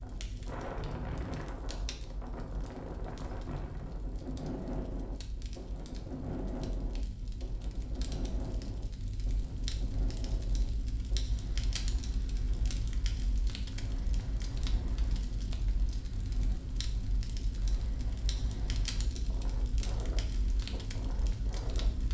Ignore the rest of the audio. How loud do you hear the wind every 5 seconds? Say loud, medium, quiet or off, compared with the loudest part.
loud, loud, medium, medium, medium.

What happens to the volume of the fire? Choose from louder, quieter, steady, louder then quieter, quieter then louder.
louder.